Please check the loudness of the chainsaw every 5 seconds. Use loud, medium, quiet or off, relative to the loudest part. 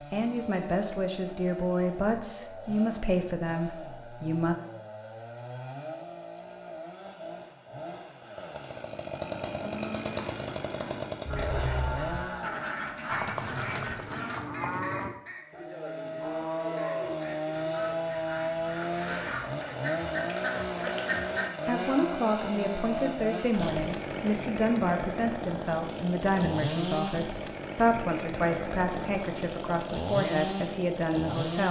medium, medium, loud, loud, loud, loud, loud.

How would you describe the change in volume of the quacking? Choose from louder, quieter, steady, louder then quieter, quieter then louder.
quieter then louder.